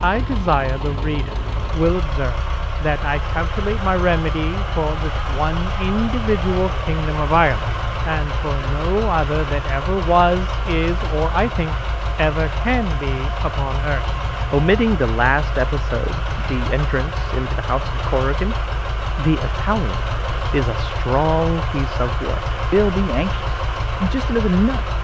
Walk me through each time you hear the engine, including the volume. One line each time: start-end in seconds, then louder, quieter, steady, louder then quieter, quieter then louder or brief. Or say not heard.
0.0-24.9 steady.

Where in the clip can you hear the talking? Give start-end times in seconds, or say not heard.
0.0-18.6, 19.1-24.9.